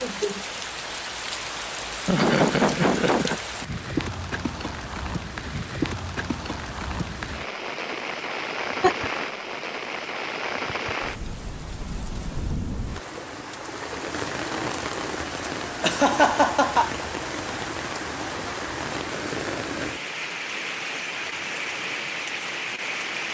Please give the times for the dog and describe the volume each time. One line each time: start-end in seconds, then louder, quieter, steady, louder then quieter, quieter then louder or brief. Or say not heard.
not heard.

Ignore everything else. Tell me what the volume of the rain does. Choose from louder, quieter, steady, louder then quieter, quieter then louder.
steady.